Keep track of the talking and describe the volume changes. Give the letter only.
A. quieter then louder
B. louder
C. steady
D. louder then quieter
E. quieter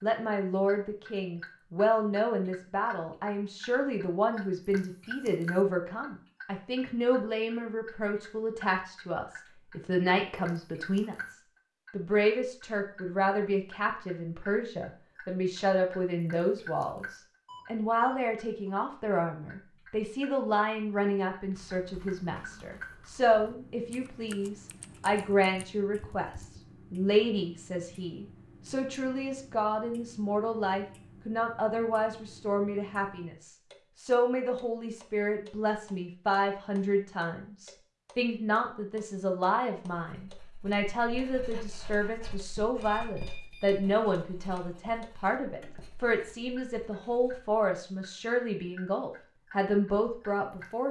C.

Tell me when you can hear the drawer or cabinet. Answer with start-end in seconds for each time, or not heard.
not heard.